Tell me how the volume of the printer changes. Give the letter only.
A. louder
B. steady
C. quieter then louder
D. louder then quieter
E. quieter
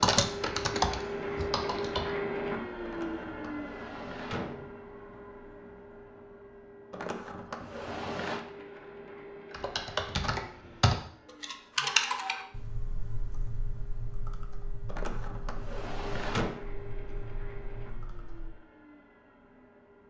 C.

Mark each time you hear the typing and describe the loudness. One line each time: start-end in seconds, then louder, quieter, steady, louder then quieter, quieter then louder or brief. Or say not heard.
0.0-2.1 brief
9.5-18.6 quieter.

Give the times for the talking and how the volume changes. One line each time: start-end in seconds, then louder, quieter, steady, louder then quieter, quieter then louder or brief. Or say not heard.
not heard.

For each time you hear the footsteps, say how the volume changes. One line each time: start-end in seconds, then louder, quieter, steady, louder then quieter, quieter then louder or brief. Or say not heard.
not heard.